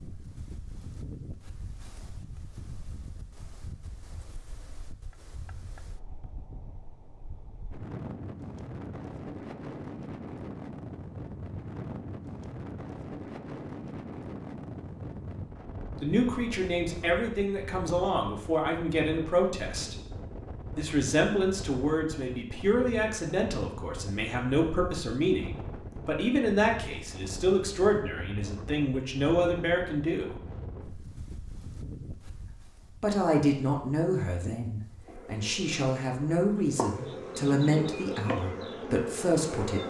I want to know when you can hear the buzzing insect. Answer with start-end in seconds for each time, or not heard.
35.0-39.8.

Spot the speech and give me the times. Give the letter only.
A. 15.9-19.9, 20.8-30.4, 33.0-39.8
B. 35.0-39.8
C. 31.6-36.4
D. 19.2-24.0
A.